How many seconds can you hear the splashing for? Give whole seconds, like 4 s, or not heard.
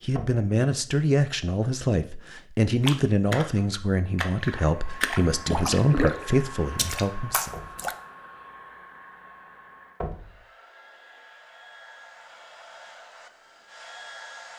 5 s.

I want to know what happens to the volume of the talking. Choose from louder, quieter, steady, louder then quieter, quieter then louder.
steady.